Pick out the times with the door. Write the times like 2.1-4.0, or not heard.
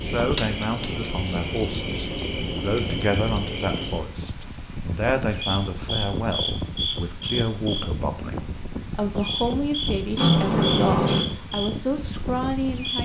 10.2-11.2.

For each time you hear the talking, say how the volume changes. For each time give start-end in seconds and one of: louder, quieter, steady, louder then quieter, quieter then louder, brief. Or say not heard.
0.0-12.9 steady.